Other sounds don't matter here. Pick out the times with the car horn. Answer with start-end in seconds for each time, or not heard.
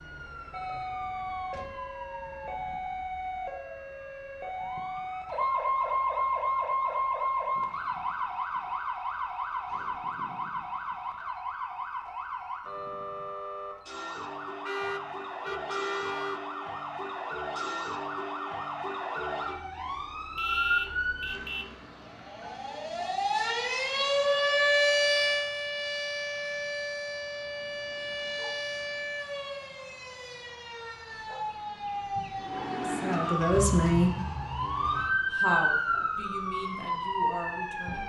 14.7-16.4, 20.4-21.8.